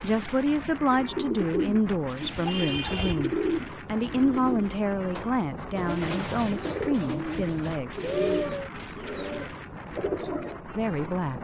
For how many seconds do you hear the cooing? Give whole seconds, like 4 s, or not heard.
10 s.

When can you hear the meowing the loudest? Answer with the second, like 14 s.
8 s.